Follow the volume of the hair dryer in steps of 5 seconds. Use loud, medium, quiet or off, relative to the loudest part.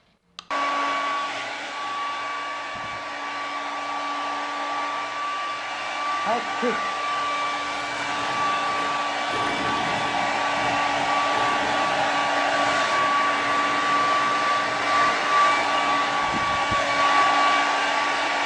medium, medium, loud, loud.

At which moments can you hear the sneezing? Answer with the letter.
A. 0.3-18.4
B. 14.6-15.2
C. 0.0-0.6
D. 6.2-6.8
D.